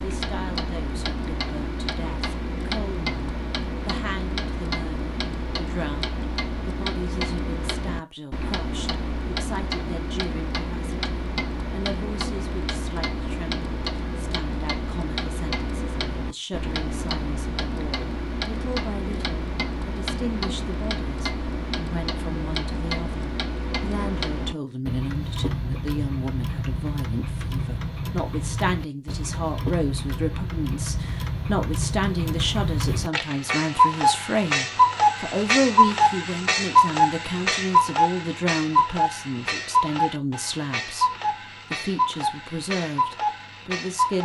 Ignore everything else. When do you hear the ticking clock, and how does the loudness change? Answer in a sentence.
You can hear the ticking clock from 0.0 to 44.2 s, getting louder.